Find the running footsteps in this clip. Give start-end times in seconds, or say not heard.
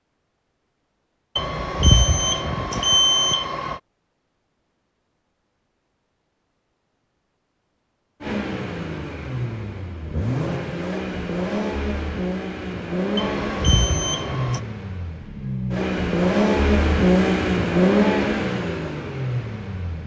not heard.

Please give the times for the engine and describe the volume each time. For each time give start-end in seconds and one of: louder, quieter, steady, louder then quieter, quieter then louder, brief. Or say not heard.
8.2-20.0 louder.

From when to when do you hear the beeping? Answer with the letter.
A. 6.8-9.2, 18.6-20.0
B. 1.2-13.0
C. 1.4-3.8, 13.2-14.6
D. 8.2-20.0
C.